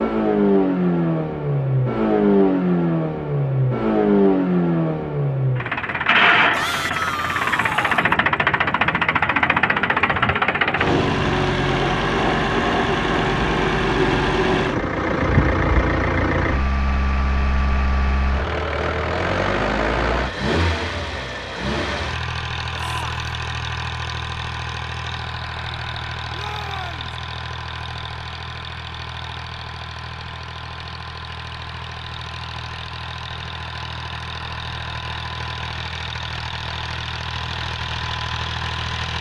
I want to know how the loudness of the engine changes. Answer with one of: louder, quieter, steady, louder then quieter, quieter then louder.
quieter.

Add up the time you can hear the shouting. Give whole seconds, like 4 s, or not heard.
3 s.